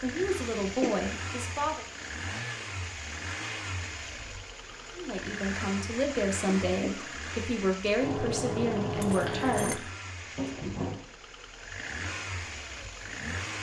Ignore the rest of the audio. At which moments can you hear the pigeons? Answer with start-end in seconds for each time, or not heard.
not heard.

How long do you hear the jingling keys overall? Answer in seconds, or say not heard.
2 s.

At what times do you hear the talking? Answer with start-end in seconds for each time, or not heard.
0.0-1.9, 5.0-9.8.